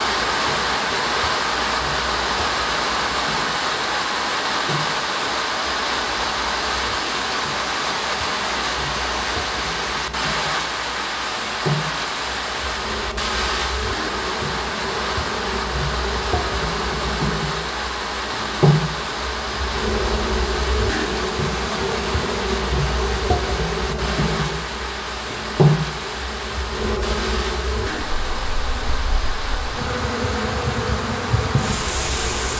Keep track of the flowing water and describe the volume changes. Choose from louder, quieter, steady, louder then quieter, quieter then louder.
quieter.